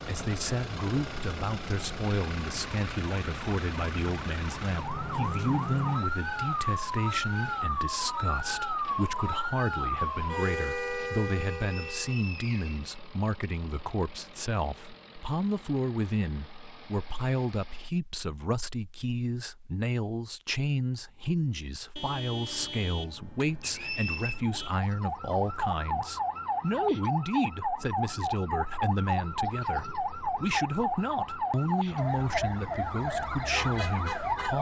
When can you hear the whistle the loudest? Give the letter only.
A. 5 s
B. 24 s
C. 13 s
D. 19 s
B.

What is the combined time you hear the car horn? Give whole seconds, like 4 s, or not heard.
3 s.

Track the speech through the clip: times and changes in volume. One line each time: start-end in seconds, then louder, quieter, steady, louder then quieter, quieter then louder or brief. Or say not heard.
0.0-34.5 steady.